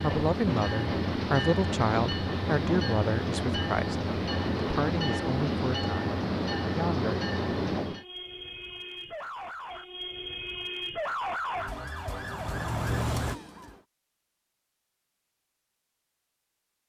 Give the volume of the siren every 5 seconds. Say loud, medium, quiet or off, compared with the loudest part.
off, medium, loud, off.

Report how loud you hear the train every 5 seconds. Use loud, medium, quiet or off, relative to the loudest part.
loud, loud, off, off.